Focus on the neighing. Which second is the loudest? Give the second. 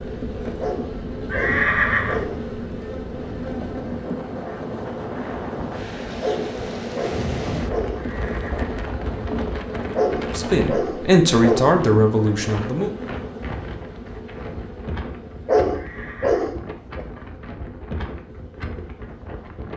2 s.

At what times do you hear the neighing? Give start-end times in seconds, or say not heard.
1.2-2.2, 8.0-8.7, 15.7-16.4.